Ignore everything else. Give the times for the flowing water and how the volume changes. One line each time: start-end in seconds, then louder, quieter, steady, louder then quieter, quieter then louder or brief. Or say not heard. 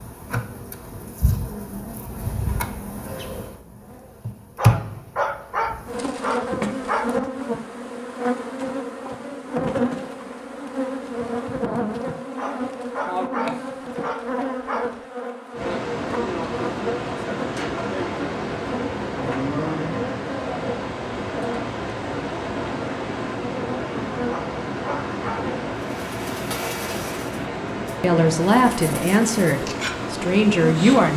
15.5-31.1 steady.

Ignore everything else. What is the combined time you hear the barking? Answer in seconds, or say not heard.
7 s.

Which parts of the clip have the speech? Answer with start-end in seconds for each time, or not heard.
28.0-31.1.